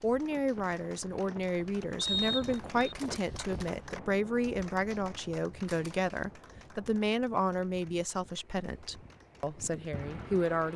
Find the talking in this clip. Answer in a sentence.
You can hear the talking from 0.0 to 10.7 s.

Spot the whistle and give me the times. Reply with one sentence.
You can hear the whistle from 1.9 to 3.0 s.